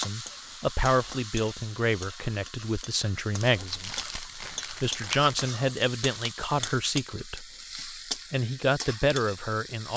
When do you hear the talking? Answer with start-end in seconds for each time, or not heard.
0.0-9.9.